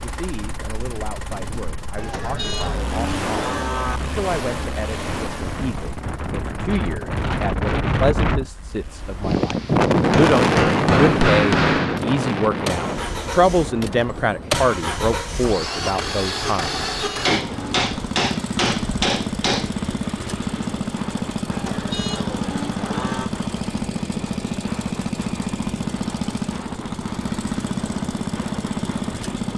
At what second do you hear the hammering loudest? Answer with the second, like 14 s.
11 s.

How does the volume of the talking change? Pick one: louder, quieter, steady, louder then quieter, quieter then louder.
louder.